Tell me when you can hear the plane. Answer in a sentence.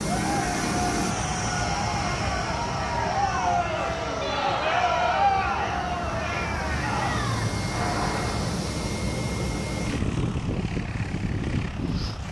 The plane can be heard from 0.0 to 12.2 s.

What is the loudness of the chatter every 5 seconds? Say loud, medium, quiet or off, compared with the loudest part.
loud, loud, off.